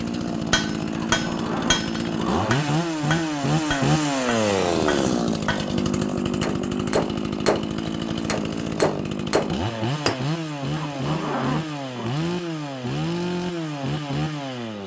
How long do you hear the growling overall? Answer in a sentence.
You can hear the growling for 3 seconds altogether.